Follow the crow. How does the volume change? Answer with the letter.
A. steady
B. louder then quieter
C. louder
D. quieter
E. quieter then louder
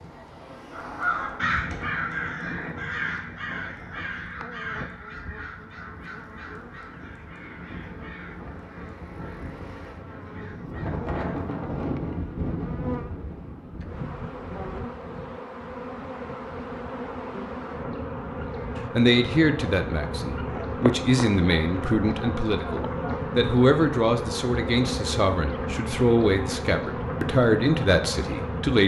D.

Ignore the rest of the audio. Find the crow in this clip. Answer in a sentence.
You can hear the crow from 0.7 to 11.4 s.